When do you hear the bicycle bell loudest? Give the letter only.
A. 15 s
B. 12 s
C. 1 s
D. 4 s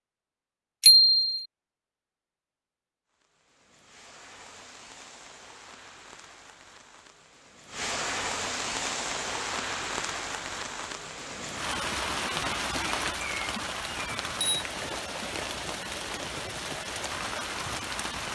C.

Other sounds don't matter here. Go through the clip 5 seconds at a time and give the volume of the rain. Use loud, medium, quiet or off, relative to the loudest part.
quiet, loud, loud, loud.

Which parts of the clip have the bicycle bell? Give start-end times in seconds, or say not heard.
0.8-1.4, 13.9-14.7.